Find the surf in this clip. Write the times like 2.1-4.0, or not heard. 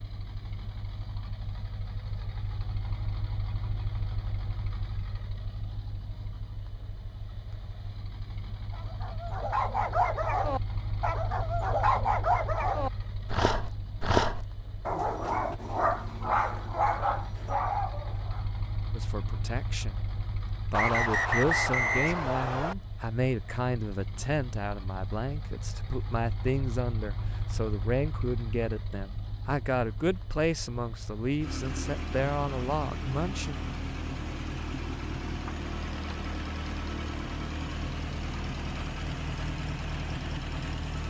not heard.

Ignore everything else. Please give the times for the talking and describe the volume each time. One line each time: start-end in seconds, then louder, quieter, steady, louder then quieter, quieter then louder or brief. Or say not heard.
18.9-33.6 steady.